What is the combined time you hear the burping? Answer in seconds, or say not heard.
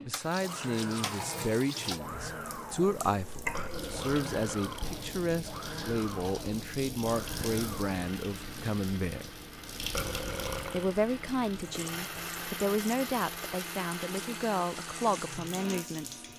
2 s.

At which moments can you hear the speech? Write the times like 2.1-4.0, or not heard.
0.0-9.3, 10.7-16.2.